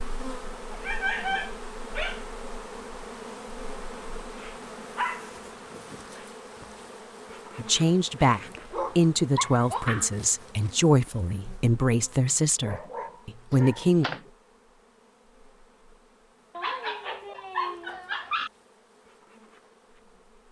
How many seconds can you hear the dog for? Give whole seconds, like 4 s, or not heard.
9 s.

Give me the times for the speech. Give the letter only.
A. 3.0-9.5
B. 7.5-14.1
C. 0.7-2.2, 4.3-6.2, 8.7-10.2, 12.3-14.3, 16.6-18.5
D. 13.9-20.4
B.